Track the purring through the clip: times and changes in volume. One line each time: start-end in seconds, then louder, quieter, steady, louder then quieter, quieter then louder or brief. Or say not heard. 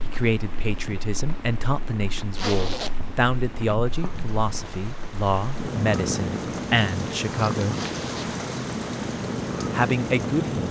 0.0-10.6 louder.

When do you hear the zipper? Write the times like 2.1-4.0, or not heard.
2.4-3.0, 7.7-8.3.